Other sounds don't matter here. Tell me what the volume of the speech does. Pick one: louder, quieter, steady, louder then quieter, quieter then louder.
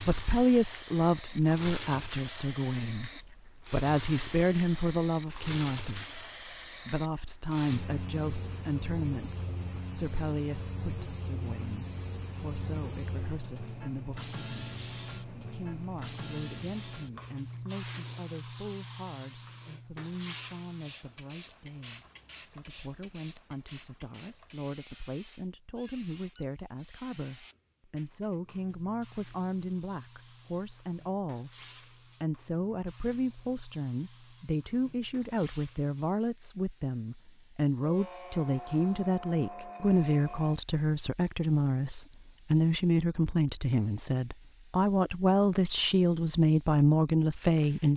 quieter then louder.